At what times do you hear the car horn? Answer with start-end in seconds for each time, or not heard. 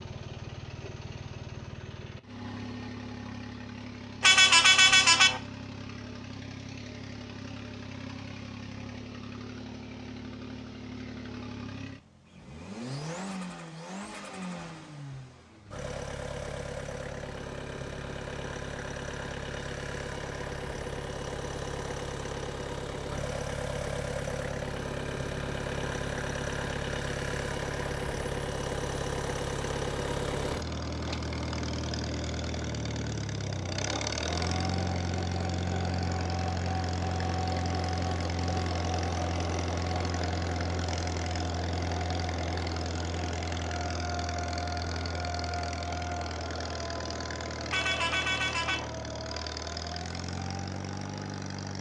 4.2-5.4, 47.7-48.9.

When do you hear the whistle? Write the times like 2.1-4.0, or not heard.
not heard.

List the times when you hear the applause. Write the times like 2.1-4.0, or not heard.
not heard.